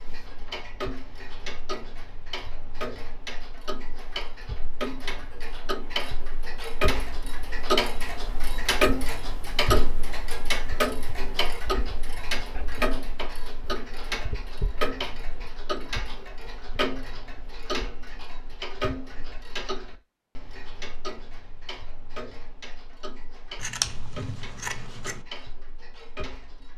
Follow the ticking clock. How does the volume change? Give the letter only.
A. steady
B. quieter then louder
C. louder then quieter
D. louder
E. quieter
C.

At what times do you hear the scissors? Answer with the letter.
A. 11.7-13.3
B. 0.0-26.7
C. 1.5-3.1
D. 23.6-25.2
D.